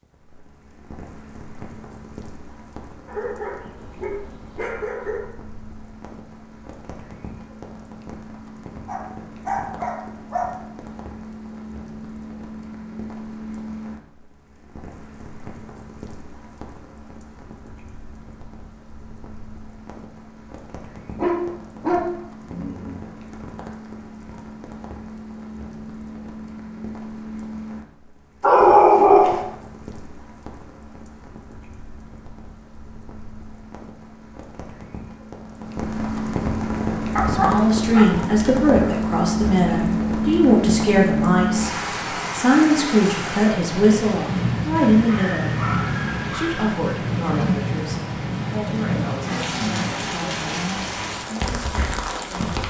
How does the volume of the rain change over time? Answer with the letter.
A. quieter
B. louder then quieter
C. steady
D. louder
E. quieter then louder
D.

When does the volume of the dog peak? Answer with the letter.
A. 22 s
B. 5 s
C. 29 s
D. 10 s
C.